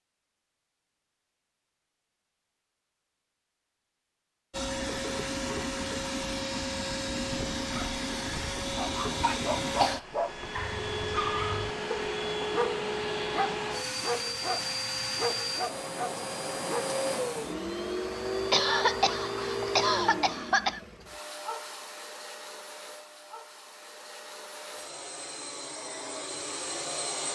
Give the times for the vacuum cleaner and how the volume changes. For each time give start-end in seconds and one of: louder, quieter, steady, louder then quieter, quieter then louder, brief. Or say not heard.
4.5-27.3 quieter.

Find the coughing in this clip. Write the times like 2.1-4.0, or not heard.
9.2-10.0, 18.5-20.8.